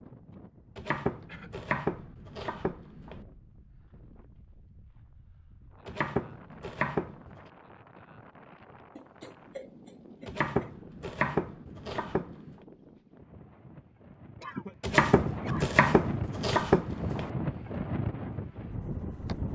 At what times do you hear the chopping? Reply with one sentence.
You can hear the chopping from 0.8 to 3.2 s, from 5.8 to 7.4 s, from 10.2 to 12.6 s and from 14.8 to 17.3 s.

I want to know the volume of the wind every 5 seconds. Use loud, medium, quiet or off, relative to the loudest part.
quiet, quiet, quiet, loud.